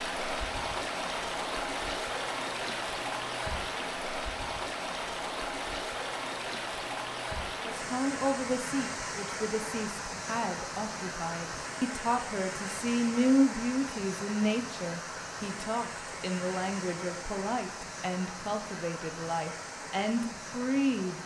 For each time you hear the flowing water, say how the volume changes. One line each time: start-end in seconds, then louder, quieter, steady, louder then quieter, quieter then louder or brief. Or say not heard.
0.0-21.2 quieter.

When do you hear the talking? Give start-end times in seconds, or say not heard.
7.7-21.2.